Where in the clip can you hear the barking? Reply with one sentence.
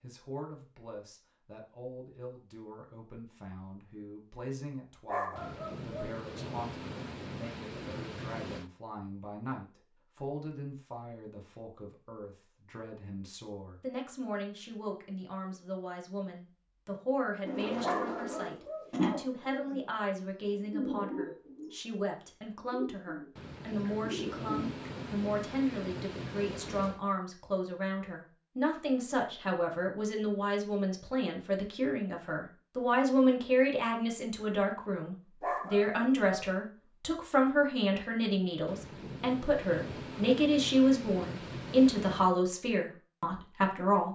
The barking can be heard from 5.0 to 6.2 s, from 17.8 to 18.9 s and from 35.4 to 36.4 s.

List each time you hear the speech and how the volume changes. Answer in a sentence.
You can hear the speech from 0.0 to 44.1 s, getting louder.